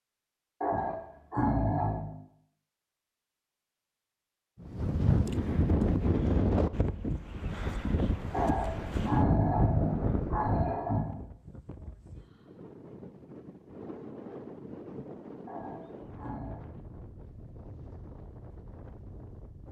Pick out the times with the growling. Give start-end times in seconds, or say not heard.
0.6-2.1, 8.3-11.1, 15.4-16.6.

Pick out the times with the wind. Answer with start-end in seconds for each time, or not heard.
4.6-19.6.